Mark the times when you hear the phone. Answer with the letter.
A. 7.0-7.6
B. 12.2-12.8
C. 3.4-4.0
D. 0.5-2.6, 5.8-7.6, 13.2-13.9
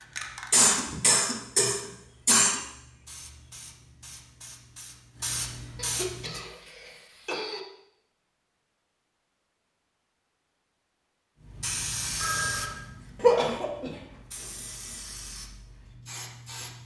B.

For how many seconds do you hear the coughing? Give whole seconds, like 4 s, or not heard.
5 s.